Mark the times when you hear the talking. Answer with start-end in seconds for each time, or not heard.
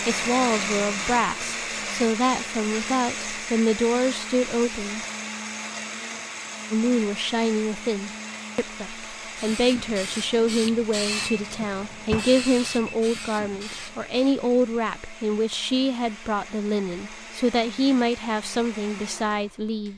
0.1-5.0, 6.7-19.9.